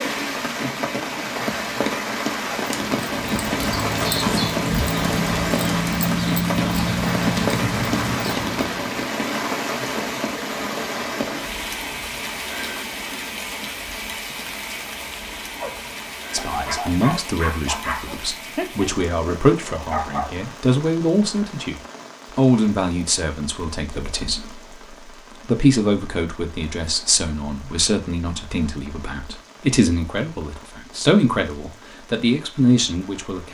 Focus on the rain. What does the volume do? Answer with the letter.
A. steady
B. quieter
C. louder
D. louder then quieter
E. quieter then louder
B.